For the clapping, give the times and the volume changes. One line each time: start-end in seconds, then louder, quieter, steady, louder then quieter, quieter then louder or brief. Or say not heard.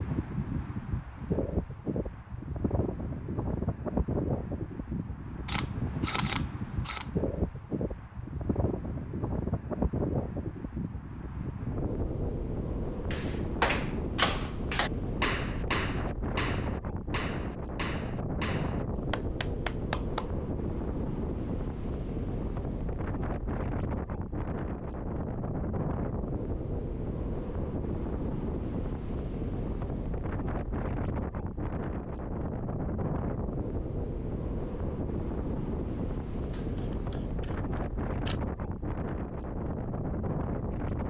13.1-20.3 quieter.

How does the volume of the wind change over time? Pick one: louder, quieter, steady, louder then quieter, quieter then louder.
steady.